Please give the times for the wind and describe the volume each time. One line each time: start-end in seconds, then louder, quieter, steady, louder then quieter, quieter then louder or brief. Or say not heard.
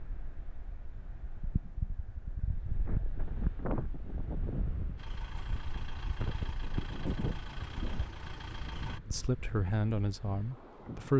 0.0-11.1 louder then quieter.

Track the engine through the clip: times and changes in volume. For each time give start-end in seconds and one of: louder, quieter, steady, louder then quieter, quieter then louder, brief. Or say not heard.
5.0-9.0 steady.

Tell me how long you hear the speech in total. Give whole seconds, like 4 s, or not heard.
2 s.